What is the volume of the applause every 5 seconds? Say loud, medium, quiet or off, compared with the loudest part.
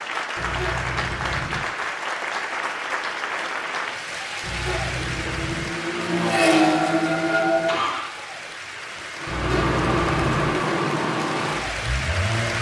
loud, medium, loud.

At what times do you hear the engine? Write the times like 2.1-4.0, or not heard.
5.0-8.1, 9.2-12.5.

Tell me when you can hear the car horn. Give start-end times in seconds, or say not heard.
0.3-1.6, 4.4-5.7, 9.2-10.5.